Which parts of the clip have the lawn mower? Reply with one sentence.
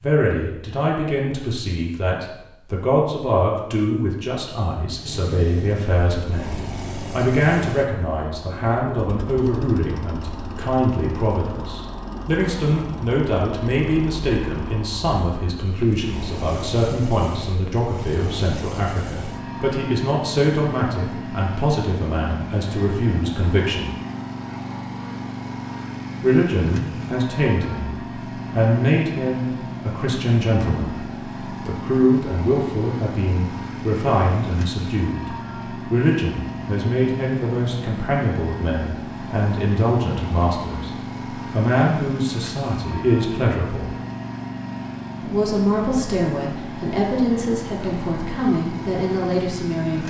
The lawn mower can be heard from 4.9 to 50.0 s.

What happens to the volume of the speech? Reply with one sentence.
The volume of the speech stays about the same.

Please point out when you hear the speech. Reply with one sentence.
The speech can be heard from 0.0 to 23.9 s, from 26.2 to 43.9 s and from 45.2 to 50.0 s.